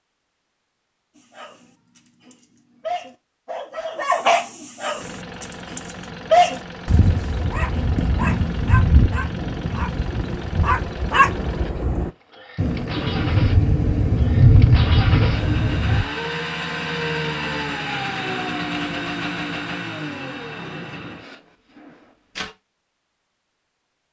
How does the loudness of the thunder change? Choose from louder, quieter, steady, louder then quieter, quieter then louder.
louder.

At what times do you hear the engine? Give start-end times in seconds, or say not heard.
5.0-22.6.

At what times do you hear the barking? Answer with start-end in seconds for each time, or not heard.
1.1-12.1.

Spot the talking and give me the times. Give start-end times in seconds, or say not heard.
not heard.